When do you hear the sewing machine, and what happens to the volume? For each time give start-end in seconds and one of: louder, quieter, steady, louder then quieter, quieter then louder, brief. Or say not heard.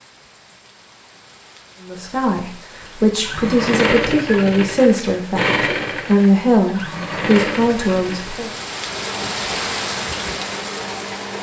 3.1-11.3 quieter.